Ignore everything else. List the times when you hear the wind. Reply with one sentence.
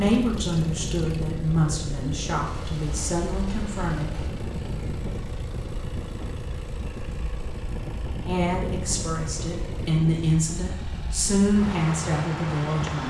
The wind can be heard from 0.0 to 13.0 s.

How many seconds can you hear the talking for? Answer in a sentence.
The talking can be heard for 9 seconds in total.